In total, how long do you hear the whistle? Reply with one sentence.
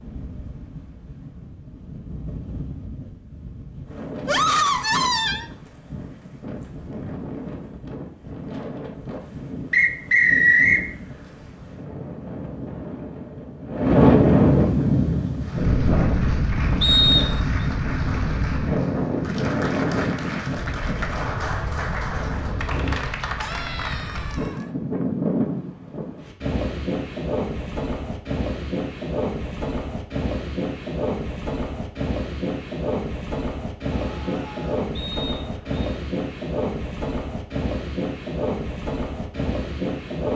You can hear the whistle for 3 seconds altogether.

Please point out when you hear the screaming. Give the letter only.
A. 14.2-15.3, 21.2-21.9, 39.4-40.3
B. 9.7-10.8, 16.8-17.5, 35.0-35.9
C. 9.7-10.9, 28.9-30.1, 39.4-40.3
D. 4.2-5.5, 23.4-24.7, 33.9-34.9
D.